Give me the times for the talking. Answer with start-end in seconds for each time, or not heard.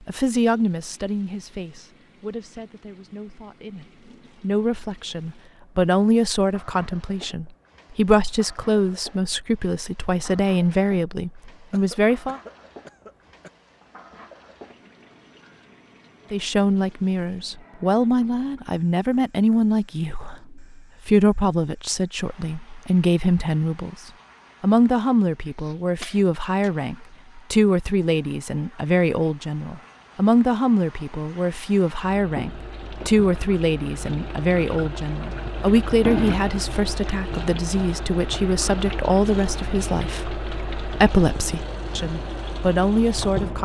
0.1-12.4, 16.3-43.5.